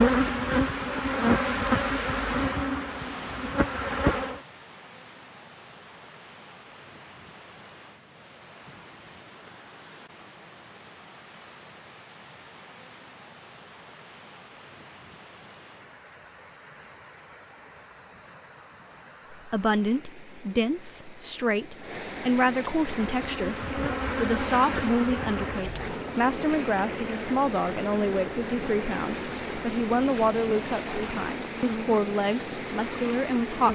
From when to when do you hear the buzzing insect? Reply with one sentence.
The buzzing insect can be heard from 0.0 to 4.4 s and from 22.8 to 33.7 s.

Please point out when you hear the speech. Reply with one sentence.
You can hear the speech from 19.3 to 33.7 s.